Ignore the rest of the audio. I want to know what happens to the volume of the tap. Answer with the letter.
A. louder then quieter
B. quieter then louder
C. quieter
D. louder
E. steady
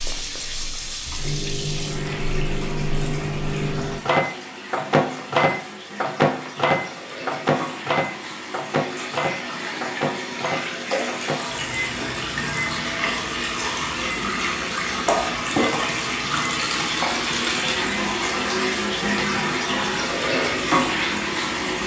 D.